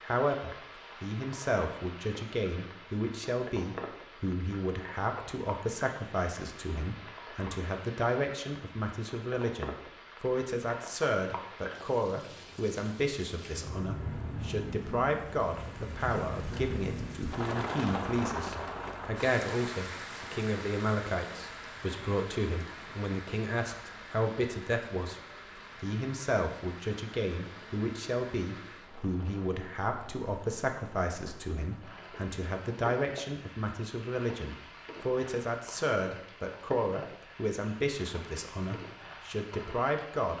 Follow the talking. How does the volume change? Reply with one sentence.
The loudness of the talking stays about the same.